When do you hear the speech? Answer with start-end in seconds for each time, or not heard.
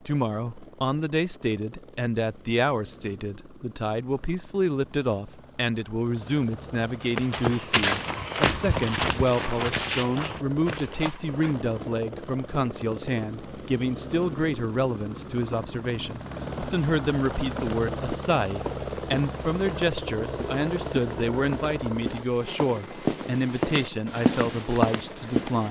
0.1-25.6.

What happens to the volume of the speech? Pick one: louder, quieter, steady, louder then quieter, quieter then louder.
steady.